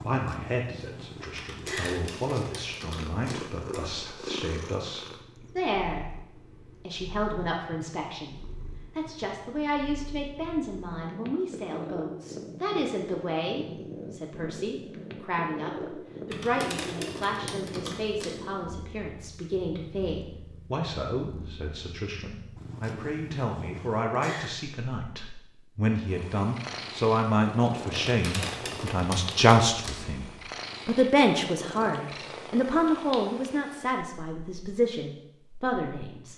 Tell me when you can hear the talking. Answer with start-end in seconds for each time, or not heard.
0.0-36.3.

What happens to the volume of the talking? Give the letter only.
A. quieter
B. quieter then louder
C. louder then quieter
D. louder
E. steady
D.